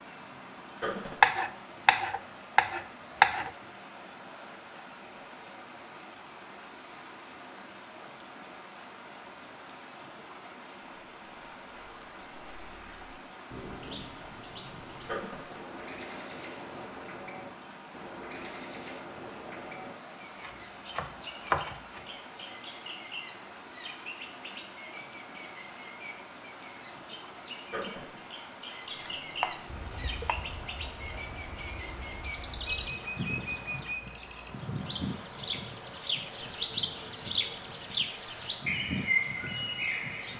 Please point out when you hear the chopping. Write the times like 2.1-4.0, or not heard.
1.2-3.5, 20.4-22.1, 28.9-30.4.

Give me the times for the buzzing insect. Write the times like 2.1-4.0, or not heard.
29.6-40.3.